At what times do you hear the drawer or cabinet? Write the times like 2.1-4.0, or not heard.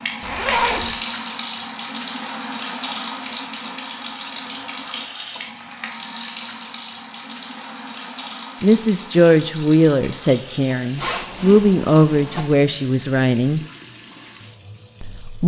not heard.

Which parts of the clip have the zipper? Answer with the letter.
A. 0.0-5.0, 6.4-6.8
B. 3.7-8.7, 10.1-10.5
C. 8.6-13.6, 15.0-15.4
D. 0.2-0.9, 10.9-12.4
D.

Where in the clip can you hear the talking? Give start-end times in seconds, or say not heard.
8.6-13.6, 15.0-15.4.